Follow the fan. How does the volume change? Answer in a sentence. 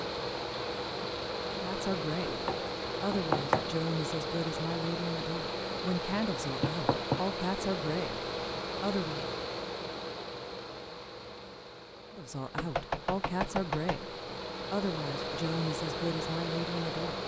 The loudness of the fan goes down, then up.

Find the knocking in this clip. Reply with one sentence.
The knocking can be heard from 2.2 to 3.8 s, from 6.6 to 7.2 s and from 12.6 to 14.0 s.